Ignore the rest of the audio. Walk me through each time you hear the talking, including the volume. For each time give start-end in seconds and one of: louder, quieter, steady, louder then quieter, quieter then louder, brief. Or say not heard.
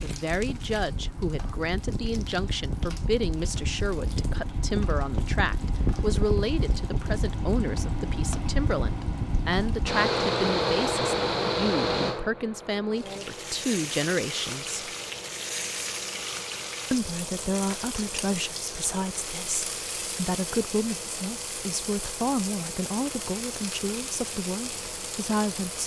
0.0-14.9 steady
16.9-25.8 steady.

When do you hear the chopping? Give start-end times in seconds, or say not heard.
not heard.